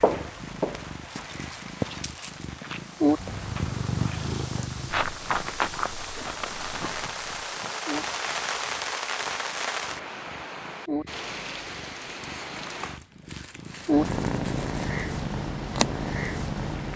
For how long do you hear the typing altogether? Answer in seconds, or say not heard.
not heard.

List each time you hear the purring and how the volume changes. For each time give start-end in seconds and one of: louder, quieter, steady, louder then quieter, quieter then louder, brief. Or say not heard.
0.0-16.9 quieter then louder.